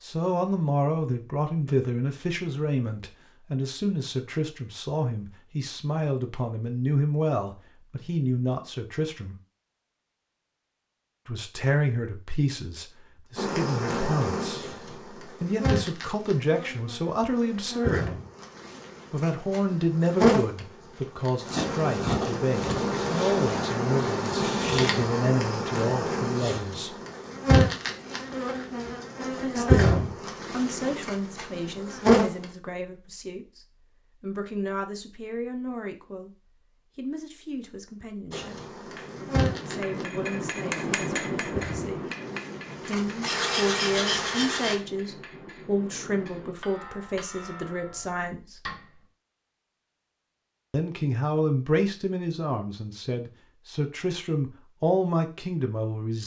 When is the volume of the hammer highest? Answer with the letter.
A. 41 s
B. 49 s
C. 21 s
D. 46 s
A.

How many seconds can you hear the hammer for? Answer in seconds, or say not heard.
10 s.